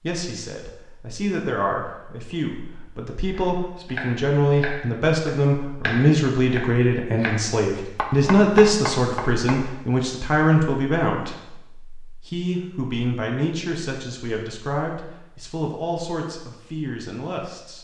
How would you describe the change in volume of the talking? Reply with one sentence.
The loudness of the talking goes up, then down.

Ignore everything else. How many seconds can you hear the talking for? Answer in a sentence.
You can hear the talking for 18 seconds altogether.